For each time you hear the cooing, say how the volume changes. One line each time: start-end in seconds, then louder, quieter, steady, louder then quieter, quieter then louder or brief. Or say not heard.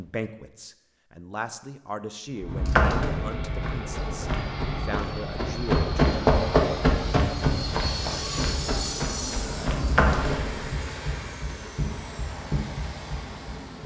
not heard.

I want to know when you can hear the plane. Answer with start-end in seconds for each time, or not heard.
2.2-13.8.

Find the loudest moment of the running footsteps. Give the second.
6 s.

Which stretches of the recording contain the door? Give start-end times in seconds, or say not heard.
2.5-3.8, 9.7-10.8.